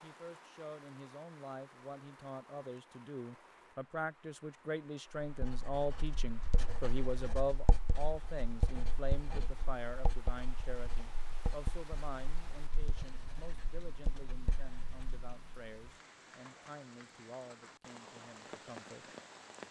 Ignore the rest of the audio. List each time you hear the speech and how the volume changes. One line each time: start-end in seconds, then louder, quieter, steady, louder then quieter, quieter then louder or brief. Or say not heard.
0.0-19.1 louder then quieter.